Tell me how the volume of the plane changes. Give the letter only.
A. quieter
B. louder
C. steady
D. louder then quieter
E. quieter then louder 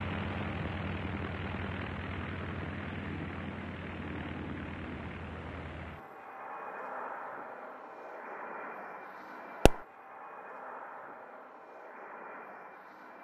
A.